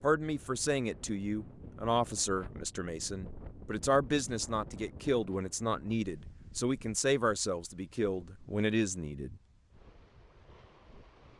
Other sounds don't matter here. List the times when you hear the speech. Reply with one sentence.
The speech can be heard from 0.0 to 9.4 s.